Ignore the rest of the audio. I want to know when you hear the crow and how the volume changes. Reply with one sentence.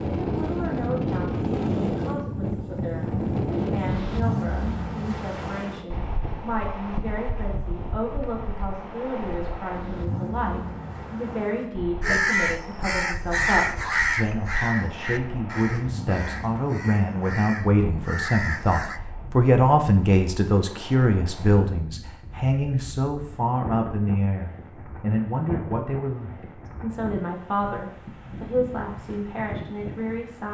The crow can be heard from 12.0 to 19.0 s, getting quieter then louder.